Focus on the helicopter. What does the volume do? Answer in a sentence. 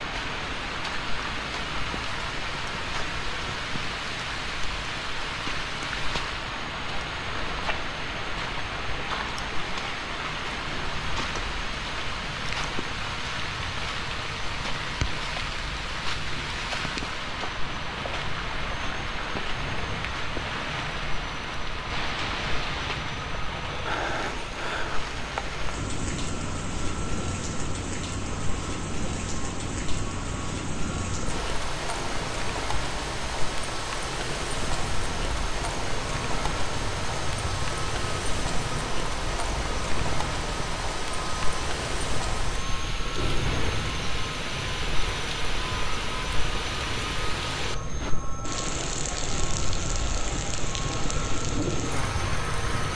The loudness of the helicopter goes up.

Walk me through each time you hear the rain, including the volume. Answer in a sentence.
The rain can be heard from 0.0 to 52.9 s, at a steady volume.